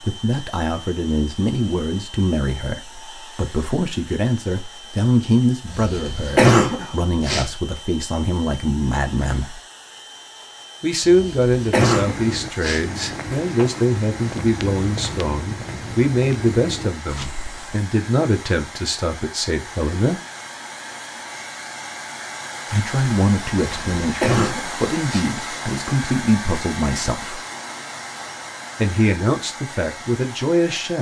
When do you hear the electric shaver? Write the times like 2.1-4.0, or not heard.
not heard.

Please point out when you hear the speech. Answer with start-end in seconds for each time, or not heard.
0.0-9.6, 10.8-20.2, 22.7-27.4, 28.8-30.9.